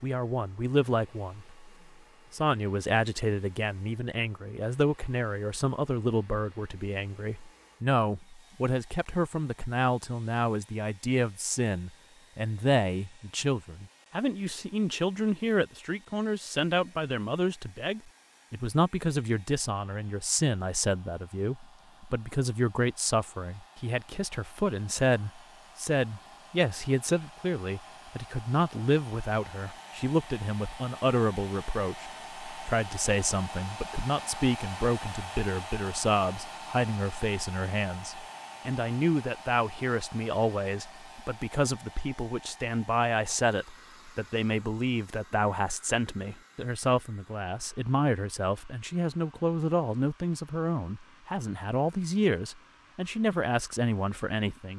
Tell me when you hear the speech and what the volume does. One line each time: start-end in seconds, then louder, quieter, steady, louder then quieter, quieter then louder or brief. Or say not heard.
0.0-1.7 brief
2.3-54.7 steady.